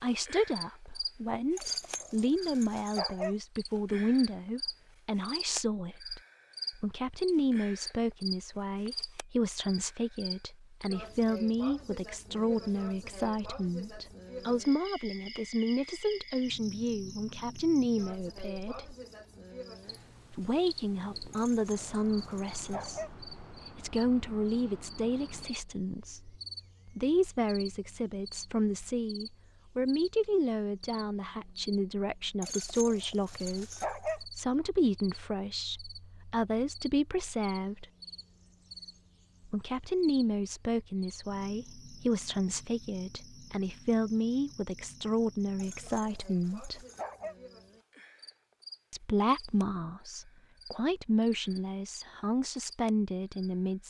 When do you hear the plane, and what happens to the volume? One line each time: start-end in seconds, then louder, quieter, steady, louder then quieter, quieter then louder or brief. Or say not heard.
not heard.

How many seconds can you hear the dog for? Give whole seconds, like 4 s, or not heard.
7 s.